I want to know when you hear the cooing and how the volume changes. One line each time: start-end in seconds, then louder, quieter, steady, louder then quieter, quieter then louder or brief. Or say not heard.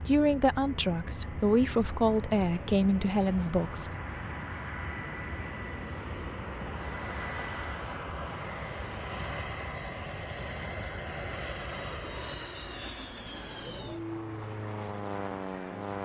not heard.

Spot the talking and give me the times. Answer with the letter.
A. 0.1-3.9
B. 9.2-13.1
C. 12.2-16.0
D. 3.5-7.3
A.